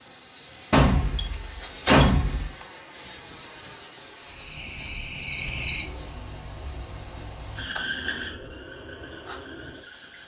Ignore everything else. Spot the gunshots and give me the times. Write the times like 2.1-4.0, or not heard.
0.7-2.5.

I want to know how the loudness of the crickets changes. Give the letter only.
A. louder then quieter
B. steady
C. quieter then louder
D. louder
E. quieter
E.